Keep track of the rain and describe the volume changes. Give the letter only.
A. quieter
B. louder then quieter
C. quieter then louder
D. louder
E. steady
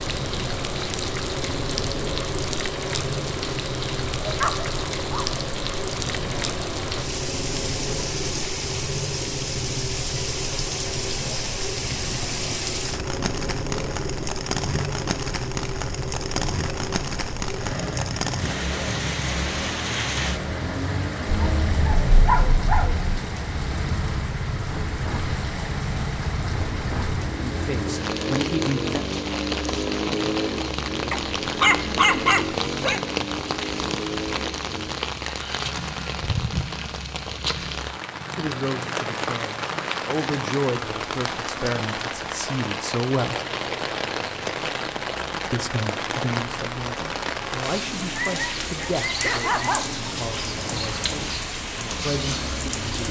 E.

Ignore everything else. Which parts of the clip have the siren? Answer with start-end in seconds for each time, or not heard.
not heard.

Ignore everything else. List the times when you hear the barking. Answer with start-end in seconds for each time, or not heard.
4.2-5.4, 21.4-23.1, 31.1-33.0, 48.1-50.0.